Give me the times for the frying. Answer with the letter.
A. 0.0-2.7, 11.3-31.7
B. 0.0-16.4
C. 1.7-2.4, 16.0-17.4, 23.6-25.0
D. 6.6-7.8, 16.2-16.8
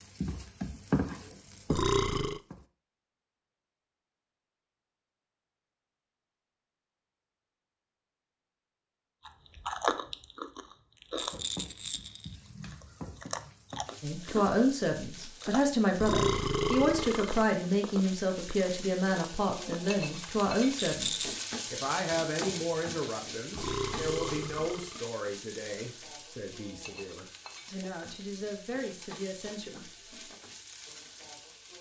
A.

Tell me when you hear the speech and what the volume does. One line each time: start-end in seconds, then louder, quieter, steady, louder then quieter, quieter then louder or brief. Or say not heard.
14.0-30.4 quieter.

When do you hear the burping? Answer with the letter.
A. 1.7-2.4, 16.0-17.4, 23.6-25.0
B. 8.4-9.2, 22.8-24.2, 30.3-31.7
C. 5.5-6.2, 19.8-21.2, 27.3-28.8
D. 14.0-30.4
A.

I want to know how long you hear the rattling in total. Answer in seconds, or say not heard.
2 s.